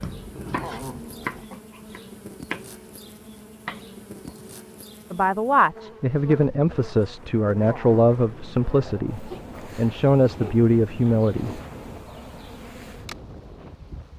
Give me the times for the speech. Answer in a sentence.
The speech can be heard from 5.1 to 11.6 s.